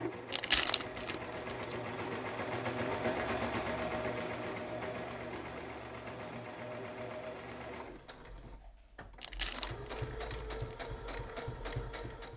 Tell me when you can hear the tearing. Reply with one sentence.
You can hear the tearing from 0.3 to 1.8 s and from 9.2 to 10.8 s.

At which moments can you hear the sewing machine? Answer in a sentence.
The sewing machine can be heard from 0.0 to 12.3 s.